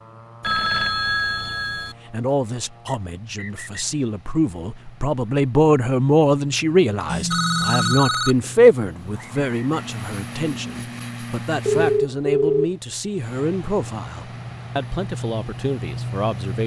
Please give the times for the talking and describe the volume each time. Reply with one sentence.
You can hear the talking from 1.8 to 16.6 s, getting louder then quieter.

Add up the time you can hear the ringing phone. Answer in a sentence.
The ringing phone can be heard for 4 seconds in total.